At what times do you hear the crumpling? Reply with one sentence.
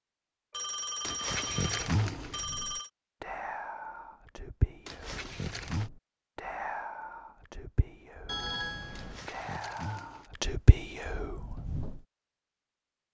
You can hear the crumpling from 1.0 to 2.5 s, from 4.8 to 5.9 s and from 8.9 to 10.3 s.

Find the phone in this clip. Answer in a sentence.
The phone can be heard from 0.5 to 2.9 s and from 8.2 to 9.2 s.